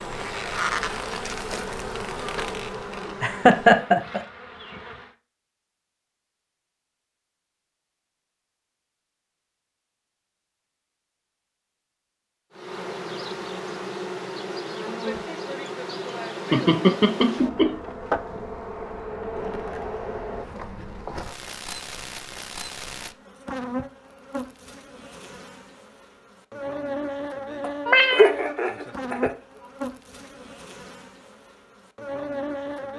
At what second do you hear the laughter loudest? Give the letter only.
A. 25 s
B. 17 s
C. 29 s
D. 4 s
D.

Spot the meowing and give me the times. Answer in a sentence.
The meowing can be heard from 27.9 to 28.3 s.